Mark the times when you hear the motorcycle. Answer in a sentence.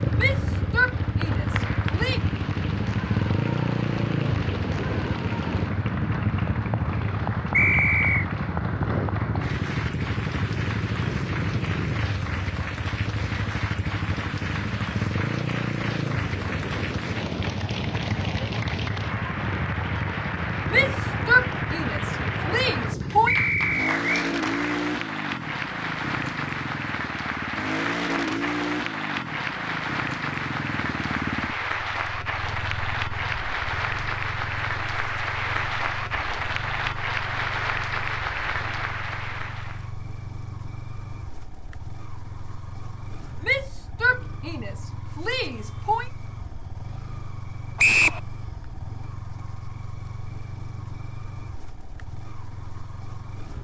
You can hear the motorcycle from 0.0 to 53.5 s.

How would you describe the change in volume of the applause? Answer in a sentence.
The volume of the applause goes up.